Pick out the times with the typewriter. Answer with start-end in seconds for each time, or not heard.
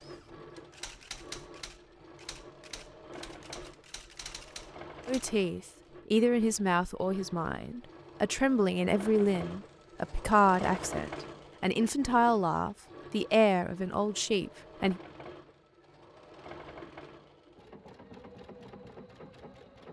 0.0-5.3.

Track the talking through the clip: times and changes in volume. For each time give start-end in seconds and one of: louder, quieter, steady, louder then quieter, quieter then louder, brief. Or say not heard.
5.0-15.0 steady.